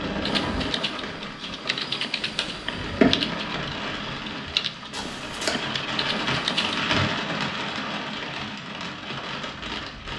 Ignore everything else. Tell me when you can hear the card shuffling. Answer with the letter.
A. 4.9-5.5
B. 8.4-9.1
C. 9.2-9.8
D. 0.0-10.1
A.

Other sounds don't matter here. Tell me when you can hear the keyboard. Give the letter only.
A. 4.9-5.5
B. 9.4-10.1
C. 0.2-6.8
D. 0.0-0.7
C.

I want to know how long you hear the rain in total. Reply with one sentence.
You can hear the rain for 10 seconds altogether.